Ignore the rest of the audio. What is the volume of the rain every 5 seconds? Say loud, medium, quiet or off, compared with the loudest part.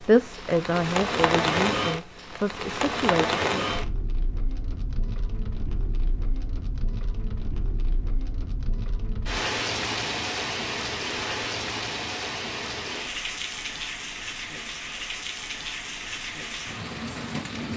loud, medium, loud, medium.